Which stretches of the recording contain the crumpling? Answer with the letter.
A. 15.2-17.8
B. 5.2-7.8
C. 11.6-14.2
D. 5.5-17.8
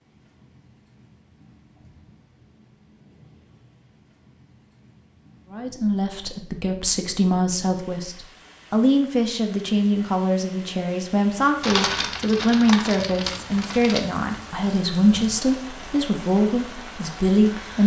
C.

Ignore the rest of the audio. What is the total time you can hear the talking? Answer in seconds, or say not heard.
12 s.